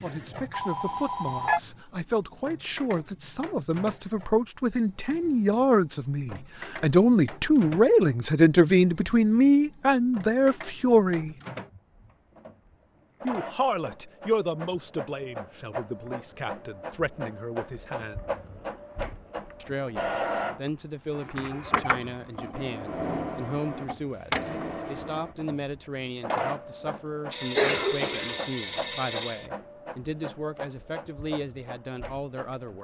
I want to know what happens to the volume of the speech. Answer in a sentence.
The volume of the speech goes up, then down.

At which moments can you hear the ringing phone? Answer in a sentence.
You can hear the ringing phone from 0.5 to 1.6 s and from 27.3 to 29.5 s.